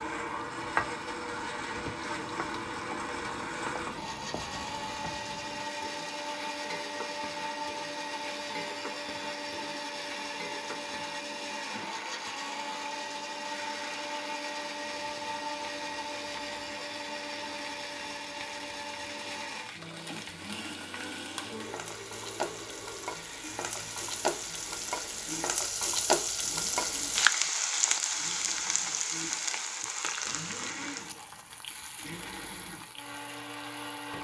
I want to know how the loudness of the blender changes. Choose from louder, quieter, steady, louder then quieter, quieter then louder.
quieter.